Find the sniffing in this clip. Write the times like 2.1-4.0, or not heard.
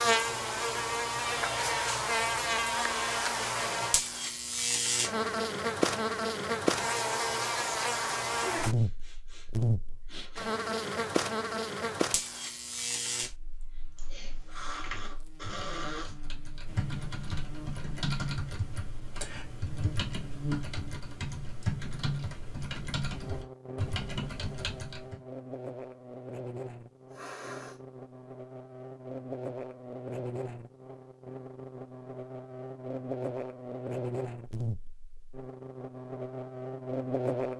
8.8-10.6, 13.6-16.1, 27.1-27.8.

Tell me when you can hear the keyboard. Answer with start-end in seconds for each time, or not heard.
13.8-25.2.